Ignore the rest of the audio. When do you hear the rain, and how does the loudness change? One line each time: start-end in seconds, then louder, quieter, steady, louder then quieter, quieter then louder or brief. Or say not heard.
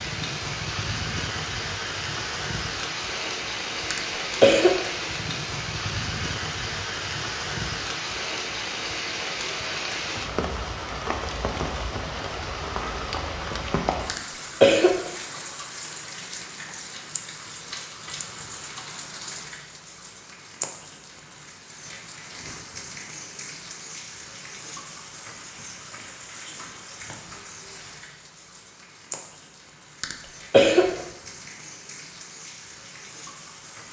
0.0-33.8 quieter.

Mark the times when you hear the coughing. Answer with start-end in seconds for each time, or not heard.
3.9-4.9, 14.1-15.1, 30.0-31.0.